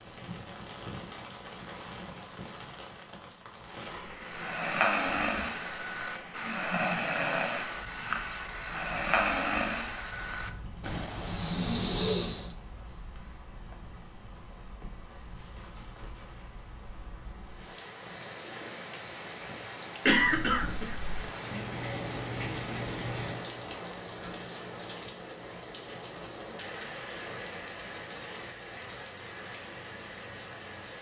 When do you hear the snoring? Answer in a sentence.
You can hear the snoring from 4.2 to 12.6 s.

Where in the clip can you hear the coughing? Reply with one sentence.
The coughing can be heard from 20.1 to 21.1 s.